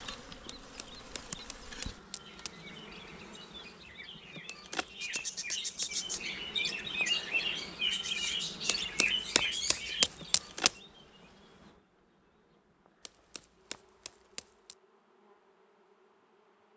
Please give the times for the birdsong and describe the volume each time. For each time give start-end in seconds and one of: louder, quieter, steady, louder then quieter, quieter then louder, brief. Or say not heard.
0.2-10.3 louder.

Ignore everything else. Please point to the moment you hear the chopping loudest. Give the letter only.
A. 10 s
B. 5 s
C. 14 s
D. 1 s
A.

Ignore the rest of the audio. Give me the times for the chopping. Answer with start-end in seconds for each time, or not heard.
0.5-2.6, 4.5-6.0, 8.7-10.7, 13.1-14.8.